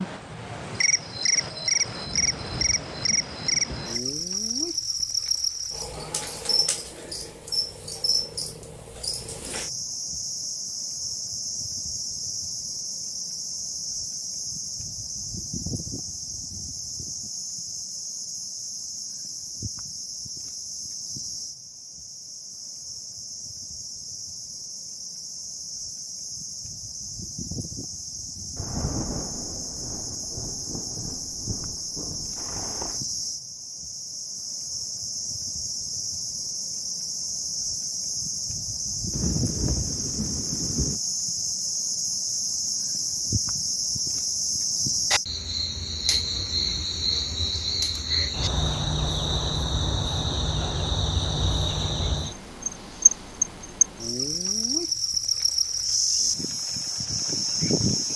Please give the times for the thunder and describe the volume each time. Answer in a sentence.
The thunder can be heard briefly from 2.0 to 3.9 s; from 28.6 to 33.0 s, getting quieter; and briefly from 39.1 to 41.0 s.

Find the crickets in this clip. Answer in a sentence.
The crickets can be heard from 0.0 to 58.1 s.